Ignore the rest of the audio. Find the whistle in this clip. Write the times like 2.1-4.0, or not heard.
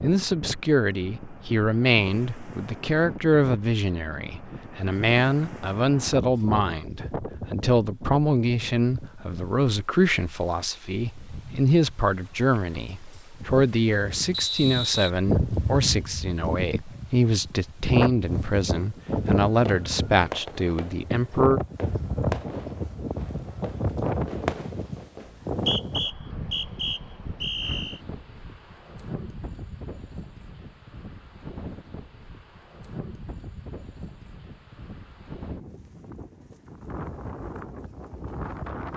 14.3-15.1, 25.2-28.0.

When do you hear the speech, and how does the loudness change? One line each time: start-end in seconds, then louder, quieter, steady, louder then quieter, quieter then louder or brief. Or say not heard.
0.0-21.6 steady.